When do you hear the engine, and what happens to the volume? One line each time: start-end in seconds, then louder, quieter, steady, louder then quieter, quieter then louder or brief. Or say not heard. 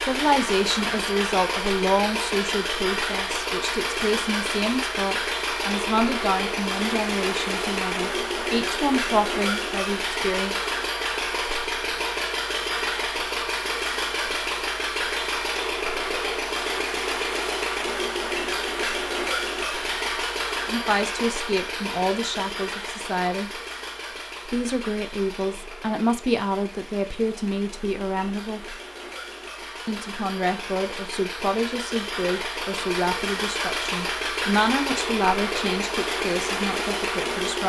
0.0-37.6 quieter then louder.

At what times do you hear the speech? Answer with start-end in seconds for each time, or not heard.
0.0-10.6, 20.6-23.5, 24.4-28.8, 29.9-37.6.